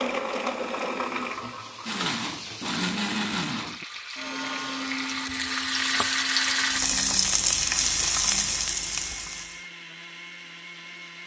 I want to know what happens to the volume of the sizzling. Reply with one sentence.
The loudness of the sizzling goes up.